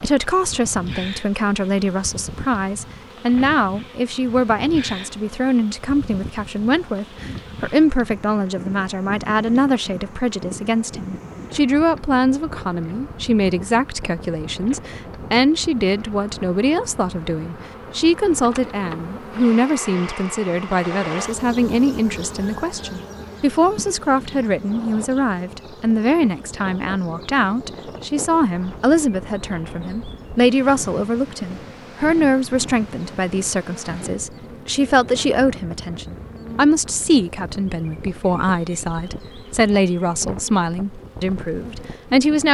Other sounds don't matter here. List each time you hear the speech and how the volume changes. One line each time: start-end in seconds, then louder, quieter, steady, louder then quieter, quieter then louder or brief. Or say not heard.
0.0-42.4 steady.